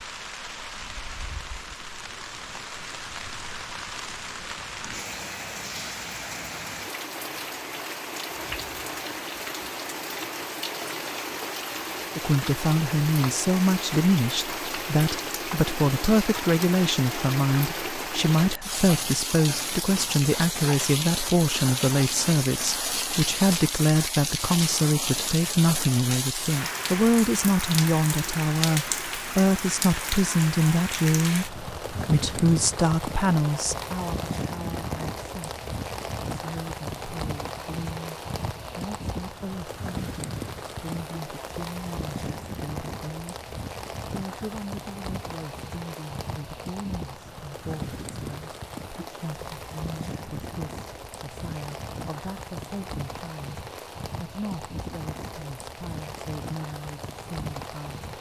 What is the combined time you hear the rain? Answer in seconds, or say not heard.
58 s.